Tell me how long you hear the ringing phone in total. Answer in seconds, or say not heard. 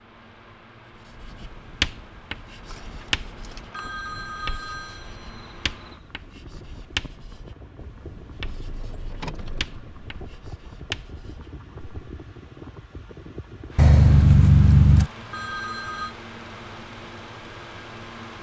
3 s.